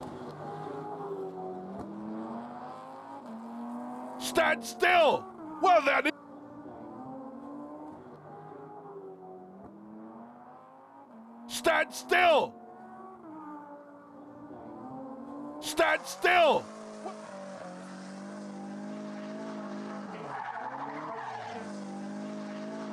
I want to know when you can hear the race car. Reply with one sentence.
The race car can be heard from 0.0 to 22.8 s.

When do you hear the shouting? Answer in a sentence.
You can hear the shouting from 4.2 to 6.1 s, from 11.5 to 12.5 s and from 15.6 to 17.1 s.